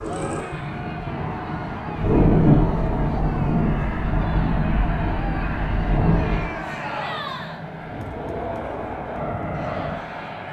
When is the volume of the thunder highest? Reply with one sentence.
The loudest moment of the thunder is at 2 seconds.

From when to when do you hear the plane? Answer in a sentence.
You can hear the plane from 0.0 to 10.4 s.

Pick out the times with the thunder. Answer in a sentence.
You can hear the thunder from 1.9 to 6.5 s.